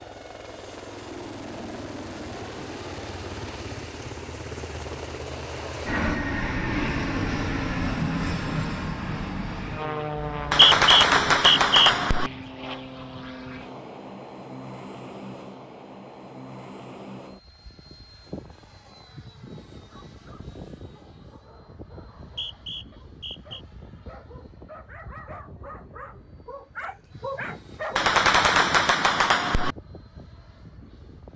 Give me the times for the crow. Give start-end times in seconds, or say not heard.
not heard.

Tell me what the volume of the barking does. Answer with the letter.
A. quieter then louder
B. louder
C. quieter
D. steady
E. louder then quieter
B.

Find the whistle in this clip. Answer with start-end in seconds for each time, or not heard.
10.2-11.9, 22.2-23.6.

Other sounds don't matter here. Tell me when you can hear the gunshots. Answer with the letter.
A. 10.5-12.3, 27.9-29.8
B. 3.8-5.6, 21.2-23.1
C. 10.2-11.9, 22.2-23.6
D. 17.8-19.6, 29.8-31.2
A.